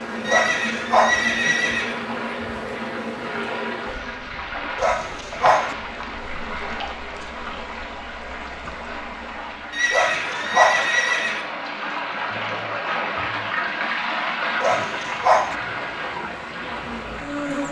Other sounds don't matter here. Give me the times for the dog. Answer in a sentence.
You can hear the dog from 0.2 to 1.2 s, from 4.8 to 5.8 s, from 9.9 to 10.9 s and from 14.6 to 15.6 s.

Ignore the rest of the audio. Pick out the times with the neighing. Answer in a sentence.
You can hear the neighing from 0.2 to 1.9 s and from 9.7 to 11.4 s.